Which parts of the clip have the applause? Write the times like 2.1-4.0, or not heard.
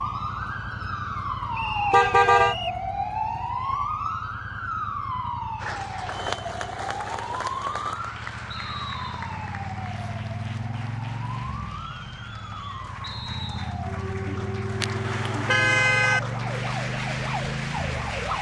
5.5-18.3.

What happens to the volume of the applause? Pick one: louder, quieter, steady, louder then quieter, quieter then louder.
quieter then louder.